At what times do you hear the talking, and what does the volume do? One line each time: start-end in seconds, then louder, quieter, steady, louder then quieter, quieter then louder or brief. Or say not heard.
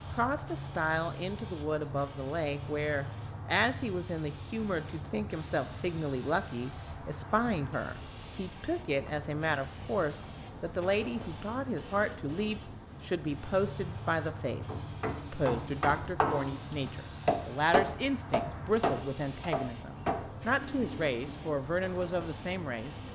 0.1-23.0 steady.